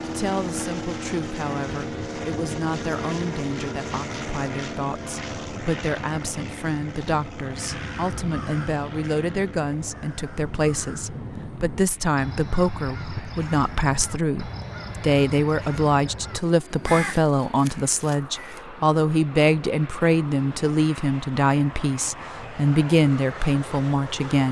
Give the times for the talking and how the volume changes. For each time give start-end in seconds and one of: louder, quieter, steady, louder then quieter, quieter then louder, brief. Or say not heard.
0.1-24.4 louder.